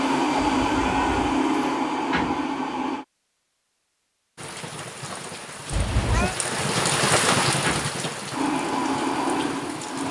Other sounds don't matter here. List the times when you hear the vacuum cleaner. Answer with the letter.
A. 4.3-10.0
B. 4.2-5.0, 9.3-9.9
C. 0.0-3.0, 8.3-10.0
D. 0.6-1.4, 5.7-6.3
C.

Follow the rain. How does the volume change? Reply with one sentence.
The loudness of the rain goes up, then down.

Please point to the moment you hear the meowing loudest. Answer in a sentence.
The volume of the meowing peaks at 6 seconds.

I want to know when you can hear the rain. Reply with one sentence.
You can hear the rain from 4.3 to 10.0 s.